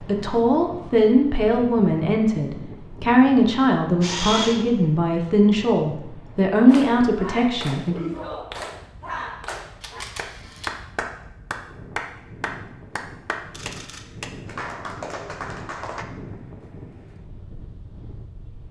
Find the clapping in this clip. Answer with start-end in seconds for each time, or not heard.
6.5-16.1.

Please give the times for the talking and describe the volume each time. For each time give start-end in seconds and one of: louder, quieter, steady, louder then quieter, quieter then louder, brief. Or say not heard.
0.0-8.0 steady.